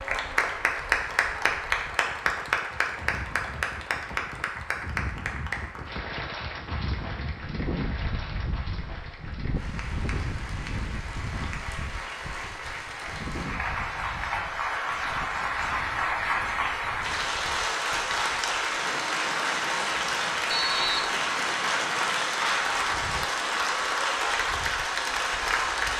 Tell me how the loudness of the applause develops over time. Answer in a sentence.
The loudness of the applause goes down, then up.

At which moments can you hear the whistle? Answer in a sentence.
You can hear the whistle from 20.5 to 21.1 s.